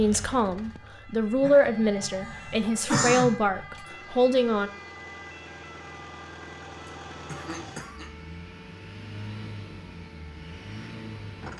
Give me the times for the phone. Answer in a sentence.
The phone can't be heard in this clip.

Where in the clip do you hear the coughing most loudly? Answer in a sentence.
The volume of the coughing peaks at 3 seconds.